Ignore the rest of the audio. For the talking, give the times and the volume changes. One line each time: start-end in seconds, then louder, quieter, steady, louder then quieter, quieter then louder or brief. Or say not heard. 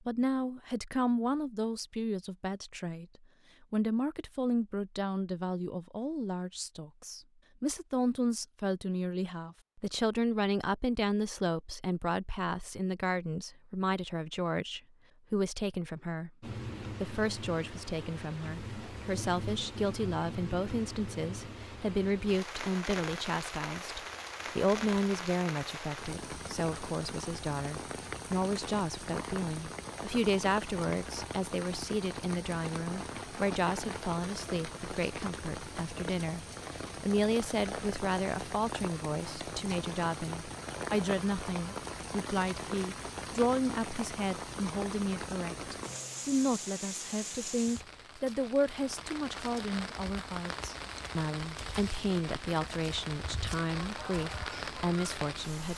0.1-55.7 steady.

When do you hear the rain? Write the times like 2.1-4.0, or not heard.
16.4-55.7.